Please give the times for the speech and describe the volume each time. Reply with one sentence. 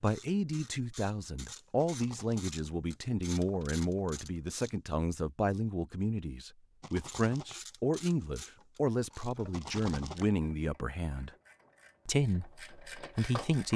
You can hear the speech from 0.0 to 11.3 s, at a steady volume; and briefly from 12.1 to 13.7 s.